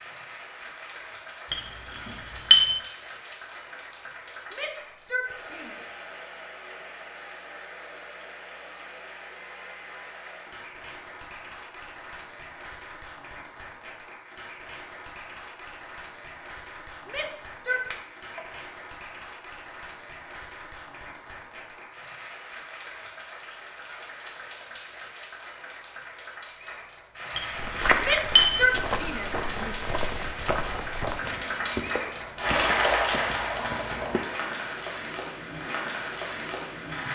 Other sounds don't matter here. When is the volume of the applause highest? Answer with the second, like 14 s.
33 s.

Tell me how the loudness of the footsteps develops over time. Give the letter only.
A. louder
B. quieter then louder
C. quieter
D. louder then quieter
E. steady
C.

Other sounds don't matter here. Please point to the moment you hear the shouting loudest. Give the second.
29 s.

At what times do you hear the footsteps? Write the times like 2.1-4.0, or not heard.
27.6-34.2.